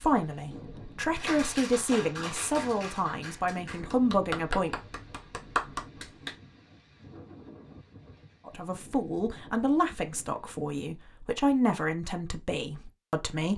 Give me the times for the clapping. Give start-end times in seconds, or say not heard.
1.1-6.3.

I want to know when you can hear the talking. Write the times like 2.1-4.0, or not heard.
0.0-4.7, 8.4-13.5.